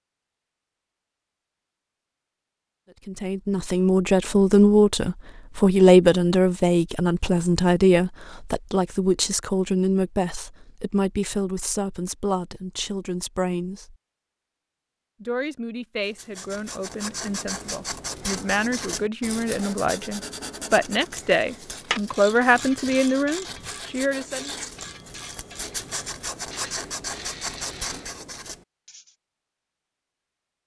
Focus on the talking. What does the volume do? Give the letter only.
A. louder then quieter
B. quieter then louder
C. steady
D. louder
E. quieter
B.